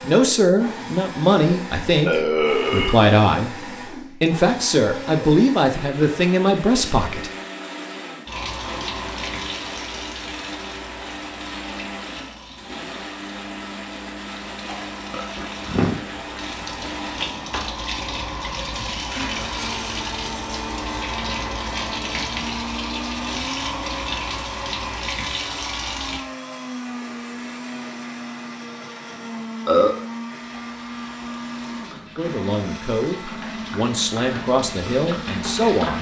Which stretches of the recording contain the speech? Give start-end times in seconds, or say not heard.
0.0-3.6, 4.2-7.3, 32.1-35.9.